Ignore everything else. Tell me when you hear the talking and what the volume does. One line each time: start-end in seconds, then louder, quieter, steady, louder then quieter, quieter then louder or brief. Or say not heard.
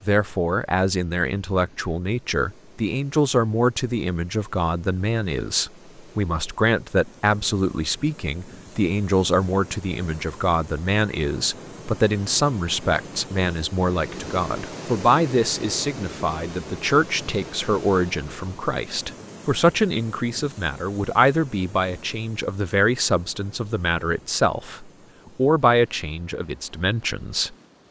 0.1-27.6 steady.